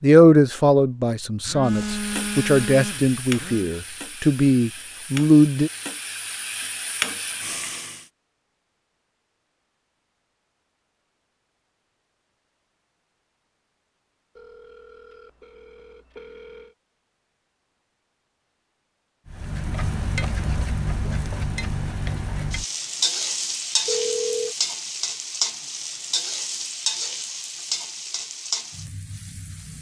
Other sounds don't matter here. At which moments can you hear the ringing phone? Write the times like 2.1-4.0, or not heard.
1.4-3.7, 14.3-16.8, 23.9-24.6.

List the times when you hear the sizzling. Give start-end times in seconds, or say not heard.
1.6-8.1, 19.3-29.7.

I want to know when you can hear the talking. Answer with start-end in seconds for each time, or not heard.
0.0-5.7.